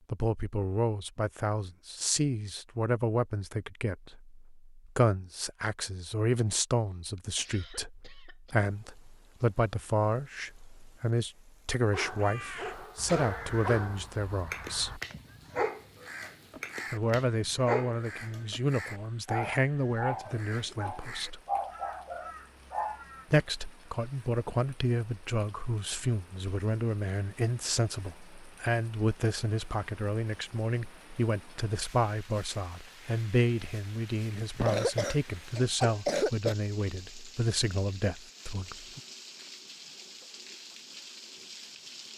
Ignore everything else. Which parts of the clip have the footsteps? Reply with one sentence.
You can't hear the footsteps here.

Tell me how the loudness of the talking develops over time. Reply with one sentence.
The loudness of the talking stays about the same.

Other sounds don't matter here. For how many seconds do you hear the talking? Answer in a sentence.
The talking can be heard for 35 seconds in total.